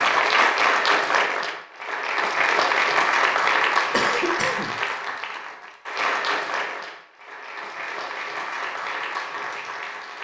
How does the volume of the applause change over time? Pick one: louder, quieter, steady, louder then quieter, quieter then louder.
quieter.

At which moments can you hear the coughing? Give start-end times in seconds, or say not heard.
3.9-4.8.